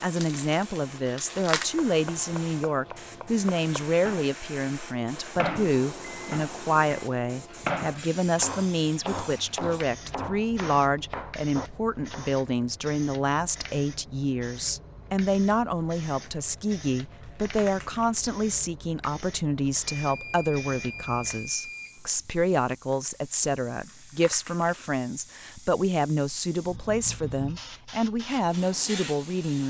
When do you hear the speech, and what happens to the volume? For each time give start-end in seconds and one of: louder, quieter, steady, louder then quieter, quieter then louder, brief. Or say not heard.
0.0-29.6 steady.